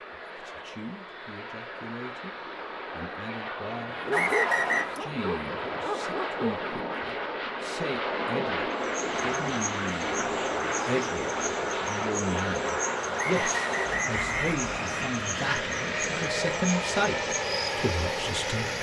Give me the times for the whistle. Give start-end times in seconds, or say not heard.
4.1-4.8, 13.2-15.1.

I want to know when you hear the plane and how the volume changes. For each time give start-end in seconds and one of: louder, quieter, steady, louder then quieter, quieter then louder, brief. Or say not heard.
0.0-18.7 louder.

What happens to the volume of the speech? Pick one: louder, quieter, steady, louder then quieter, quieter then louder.
louder.